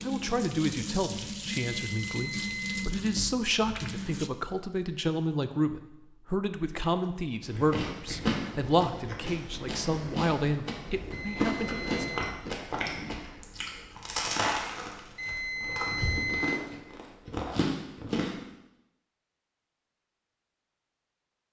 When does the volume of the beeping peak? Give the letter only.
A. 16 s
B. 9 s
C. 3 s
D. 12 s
A.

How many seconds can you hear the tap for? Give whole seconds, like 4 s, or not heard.
4 s.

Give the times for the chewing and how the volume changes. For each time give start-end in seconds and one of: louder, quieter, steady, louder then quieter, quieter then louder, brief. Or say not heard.
7.4-18.4 steady.